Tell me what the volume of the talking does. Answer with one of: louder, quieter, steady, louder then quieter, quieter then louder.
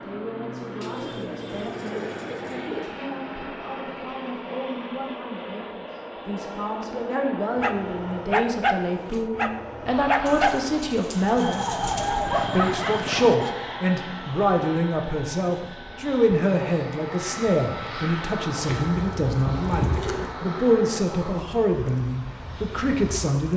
louder.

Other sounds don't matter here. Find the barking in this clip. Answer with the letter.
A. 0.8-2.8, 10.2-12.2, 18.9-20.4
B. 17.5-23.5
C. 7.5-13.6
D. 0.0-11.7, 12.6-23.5
C.